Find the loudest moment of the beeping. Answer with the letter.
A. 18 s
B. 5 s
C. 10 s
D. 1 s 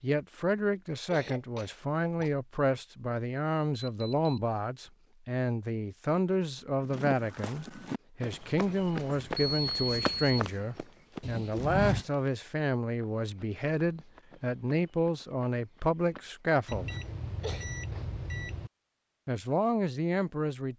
C.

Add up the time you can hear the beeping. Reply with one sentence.
The beeping can be heard for 4 seconds in total.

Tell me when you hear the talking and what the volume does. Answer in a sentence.
You can hear the talking from 0.0 to 16.9 s, at a steady volume; and briefly from 19.2 to 20.7 s.